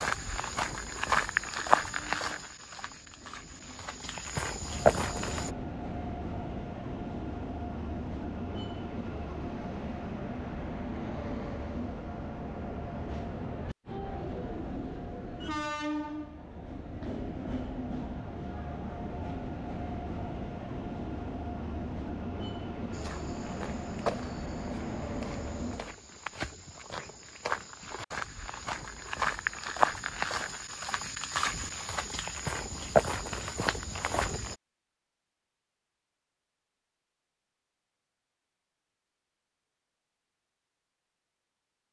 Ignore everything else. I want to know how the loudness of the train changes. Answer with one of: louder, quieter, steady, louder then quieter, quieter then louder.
louder.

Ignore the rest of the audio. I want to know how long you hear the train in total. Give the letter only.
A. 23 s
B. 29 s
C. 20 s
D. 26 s
D.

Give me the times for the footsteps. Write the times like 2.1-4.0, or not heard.
0.0-5.5, 22.9-34.5.